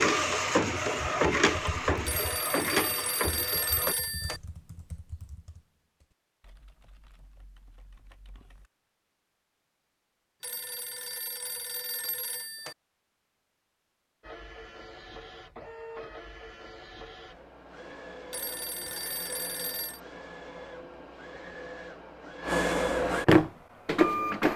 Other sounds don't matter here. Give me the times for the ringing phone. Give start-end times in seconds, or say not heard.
2.0-4.4, 10.4-12.8, 18.3-20.0.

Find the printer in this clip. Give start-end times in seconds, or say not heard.
0.0-4.0, 14.2-24.5.